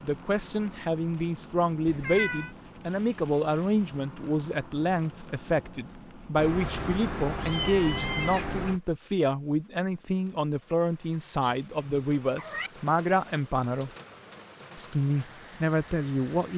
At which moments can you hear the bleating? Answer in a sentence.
You can't hear the bleating here.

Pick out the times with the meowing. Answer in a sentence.
You can hear the meowing from 1.9 to 2.5 s, from 6.3 to 8.8 s and from 11.4 to 12.7 s.